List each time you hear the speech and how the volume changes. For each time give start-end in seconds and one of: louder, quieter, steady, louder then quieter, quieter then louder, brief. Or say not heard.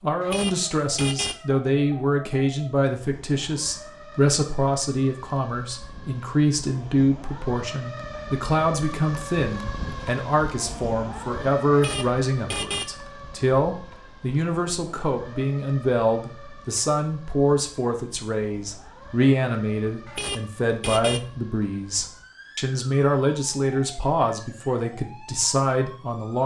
0.0-26.4 steady.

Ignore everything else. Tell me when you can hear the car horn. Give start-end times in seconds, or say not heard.
0.2-1.4, 11.7-12.9, 20.1-21.2.